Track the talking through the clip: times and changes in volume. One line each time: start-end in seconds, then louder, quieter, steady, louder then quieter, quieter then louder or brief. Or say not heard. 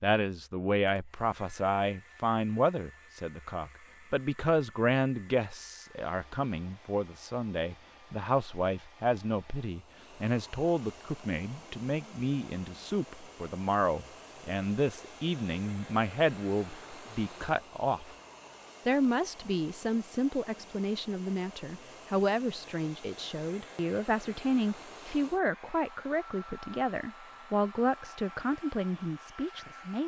0.0-18.1 steady
18.9-30.0 steady.